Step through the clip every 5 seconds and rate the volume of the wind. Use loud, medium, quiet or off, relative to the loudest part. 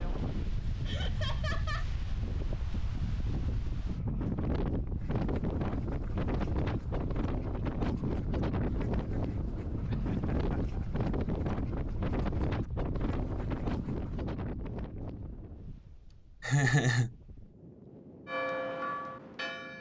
loud, loud, loud, quiet.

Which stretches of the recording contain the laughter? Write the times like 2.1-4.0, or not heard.
0.8-1.9, 9.8-10.9, 16.4-17.1.